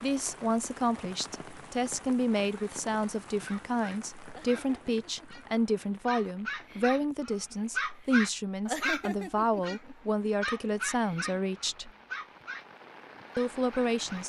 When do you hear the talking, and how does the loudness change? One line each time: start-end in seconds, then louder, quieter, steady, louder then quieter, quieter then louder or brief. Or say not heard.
0.0-11.9 steady
13.3-14.2 brief.